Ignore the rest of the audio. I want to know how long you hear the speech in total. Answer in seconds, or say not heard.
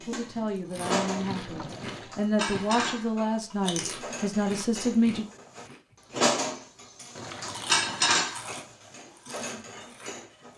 5 s.